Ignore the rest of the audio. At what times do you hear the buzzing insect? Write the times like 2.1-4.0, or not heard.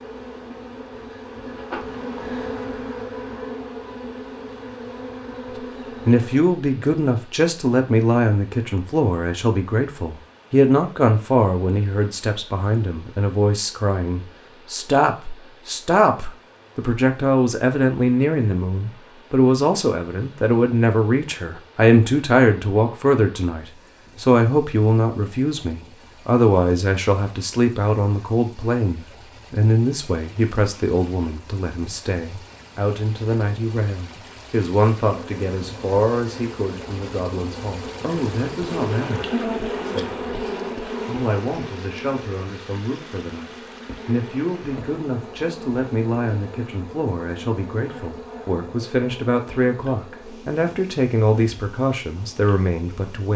0.0-6.5, 35.0-53.3.